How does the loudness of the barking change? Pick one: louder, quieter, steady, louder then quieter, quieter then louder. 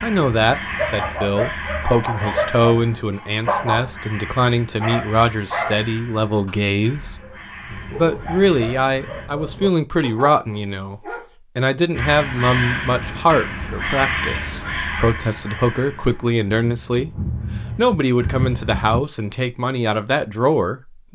quieter.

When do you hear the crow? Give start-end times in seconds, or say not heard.
0.0-9.3, 11.9-19.1.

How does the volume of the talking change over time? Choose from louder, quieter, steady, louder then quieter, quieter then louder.
steady.